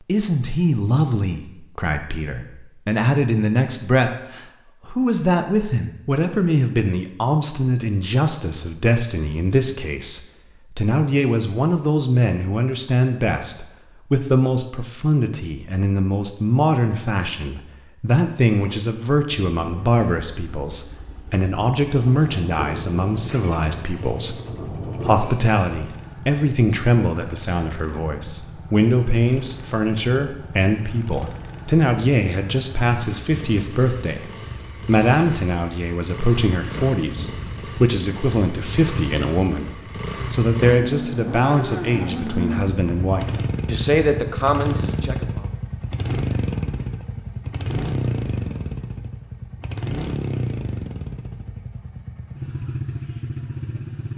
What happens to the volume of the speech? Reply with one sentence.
The loudness of the speech stays about the same.